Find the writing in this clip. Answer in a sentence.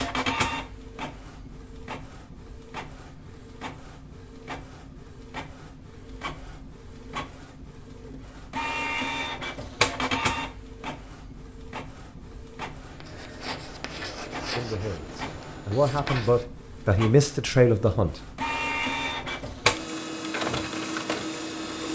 The writing can be heard from 12.8 to 16.4 s.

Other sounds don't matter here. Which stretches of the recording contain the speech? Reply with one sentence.
You can hear the speech from 14.6 to 18.1 s.